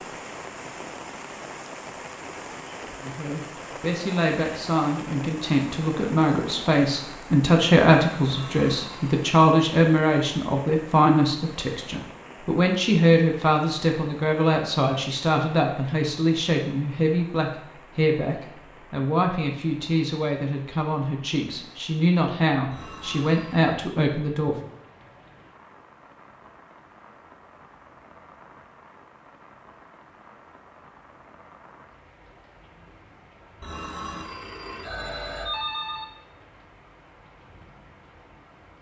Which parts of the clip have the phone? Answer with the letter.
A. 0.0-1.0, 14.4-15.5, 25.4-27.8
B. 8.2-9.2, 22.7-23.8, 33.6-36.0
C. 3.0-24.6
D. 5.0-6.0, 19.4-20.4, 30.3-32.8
B.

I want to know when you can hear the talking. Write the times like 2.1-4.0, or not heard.
3.0-24.6.